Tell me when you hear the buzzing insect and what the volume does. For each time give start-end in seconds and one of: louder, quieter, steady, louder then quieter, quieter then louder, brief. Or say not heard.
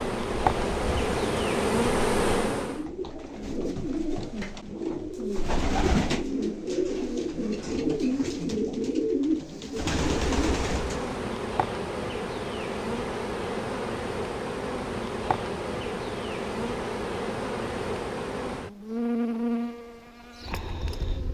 0.0-2.9 brief
9.9-21.3 steady.